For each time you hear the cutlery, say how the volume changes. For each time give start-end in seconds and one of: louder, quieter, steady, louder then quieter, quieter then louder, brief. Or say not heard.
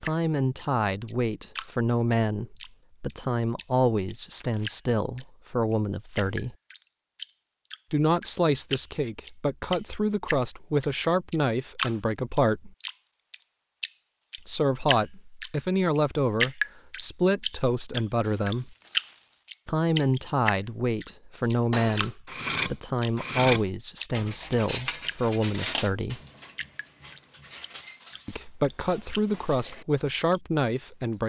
21.4-29.9 quieter.